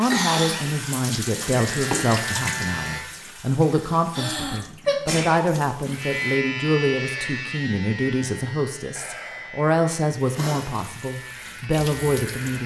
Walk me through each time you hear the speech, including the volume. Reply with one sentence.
You can hear the speech from 0.0 to 12.6 s, at a steady volume.